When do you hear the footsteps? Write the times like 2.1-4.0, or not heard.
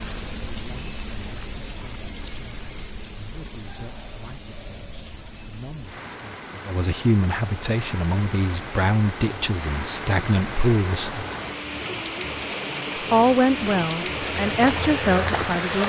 14.2-15.8.